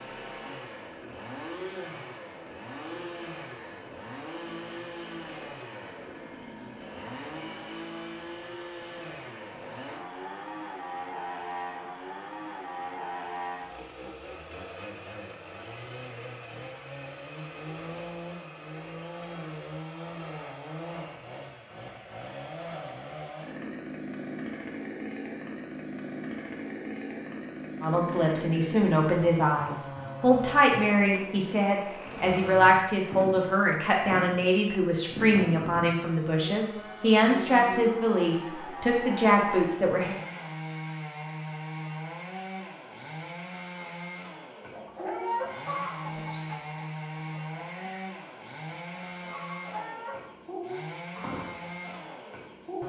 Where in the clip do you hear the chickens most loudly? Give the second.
45 s.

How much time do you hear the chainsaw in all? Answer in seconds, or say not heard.
53 s.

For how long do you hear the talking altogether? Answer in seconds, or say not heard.
12 s.